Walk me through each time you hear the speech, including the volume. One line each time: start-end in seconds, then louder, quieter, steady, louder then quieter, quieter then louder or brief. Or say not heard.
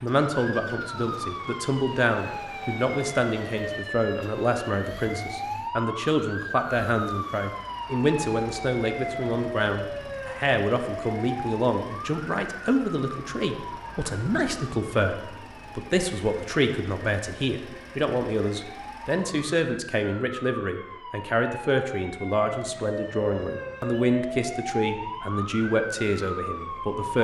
0.0-27.1 steady.